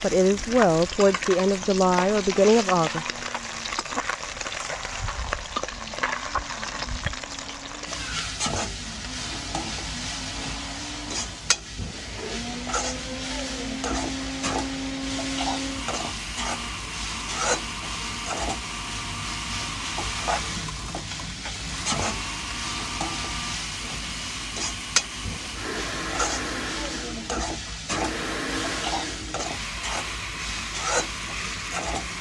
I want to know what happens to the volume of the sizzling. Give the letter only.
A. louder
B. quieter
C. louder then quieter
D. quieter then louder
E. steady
E.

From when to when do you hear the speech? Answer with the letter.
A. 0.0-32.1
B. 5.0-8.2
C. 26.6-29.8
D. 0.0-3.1
D.